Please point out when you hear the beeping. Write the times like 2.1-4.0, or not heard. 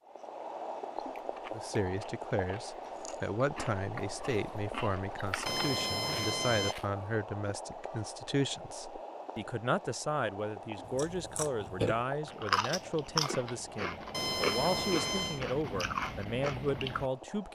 5.5-6.8, 14.1-15.4.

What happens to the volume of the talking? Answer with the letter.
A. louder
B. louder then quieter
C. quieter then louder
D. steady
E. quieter
D.